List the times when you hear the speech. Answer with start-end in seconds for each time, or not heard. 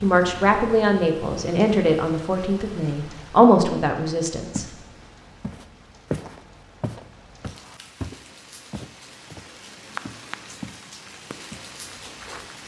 0.0-4.7.